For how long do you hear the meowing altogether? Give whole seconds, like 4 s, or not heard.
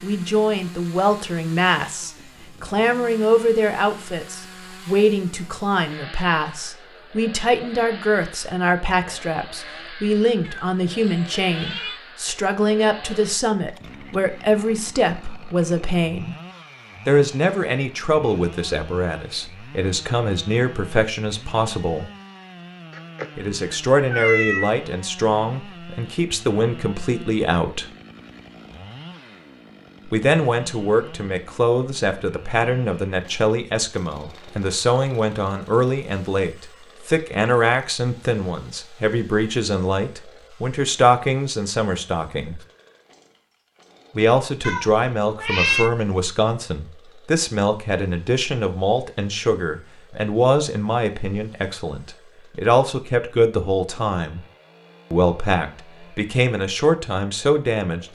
5 s.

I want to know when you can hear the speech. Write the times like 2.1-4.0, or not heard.
0.0-16.4, 17.1-22.1, 23.4-27.9, 30.1-42.6, 44.1-54.4, 55.1-58.0.